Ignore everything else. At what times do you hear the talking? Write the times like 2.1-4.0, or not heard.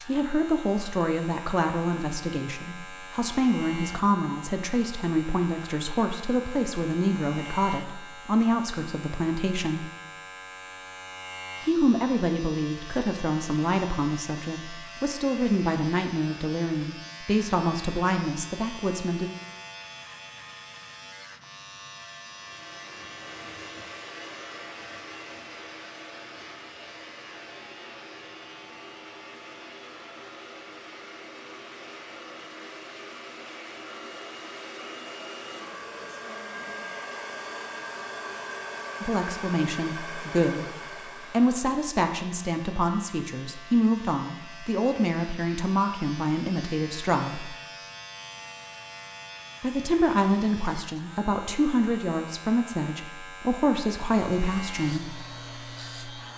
0.1-9.9, 11.7-19.3, 39.0-40.7, 41.3-47.5, 49.6-55.1.